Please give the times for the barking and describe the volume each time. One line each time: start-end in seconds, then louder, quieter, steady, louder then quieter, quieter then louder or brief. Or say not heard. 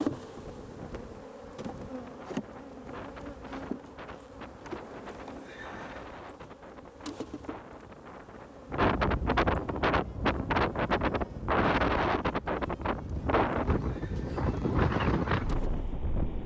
not heard.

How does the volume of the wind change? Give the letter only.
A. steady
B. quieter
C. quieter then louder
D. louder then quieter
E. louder
E.